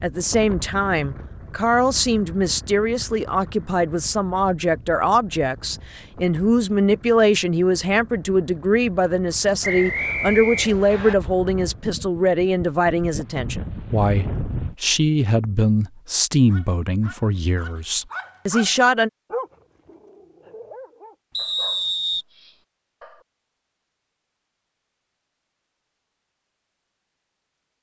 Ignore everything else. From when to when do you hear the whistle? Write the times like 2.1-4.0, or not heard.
9.6-11.2, 21.3-22.2.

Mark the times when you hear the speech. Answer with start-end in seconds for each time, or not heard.
0.0-19.1.